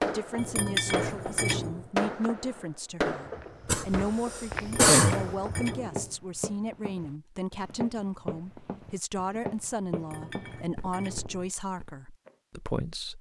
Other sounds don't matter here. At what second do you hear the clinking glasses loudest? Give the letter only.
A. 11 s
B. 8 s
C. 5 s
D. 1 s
D.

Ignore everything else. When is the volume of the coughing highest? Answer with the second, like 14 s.
5 s.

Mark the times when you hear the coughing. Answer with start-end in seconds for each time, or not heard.
3.6-5.3.